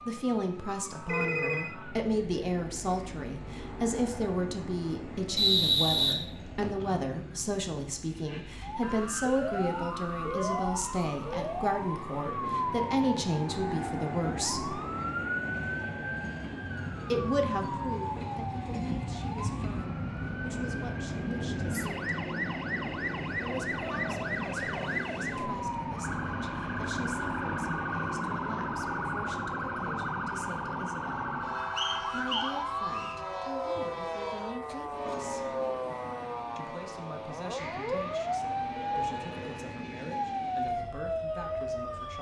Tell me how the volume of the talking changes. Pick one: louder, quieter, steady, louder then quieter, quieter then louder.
quieter.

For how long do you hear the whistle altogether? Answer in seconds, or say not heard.
3 s.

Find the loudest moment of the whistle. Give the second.
6 s.